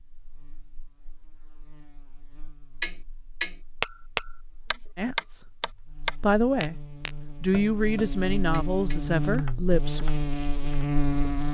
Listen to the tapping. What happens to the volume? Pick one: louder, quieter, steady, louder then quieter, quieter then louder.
quieter.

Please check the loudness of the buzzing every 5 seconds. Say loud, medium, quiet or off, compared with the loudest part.
quiet, medium, loud.